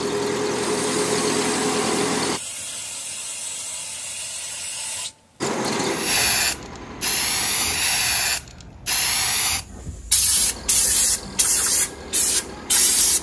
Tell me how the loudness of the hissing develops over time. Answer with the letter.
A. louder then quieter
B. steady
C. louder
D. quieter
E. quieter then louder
C.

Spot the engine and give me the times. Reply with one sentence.
The engine can be heard from 0.0 to 2.4 s, from 5.4 to 7.8 s and from 10.3 to 13.1 s.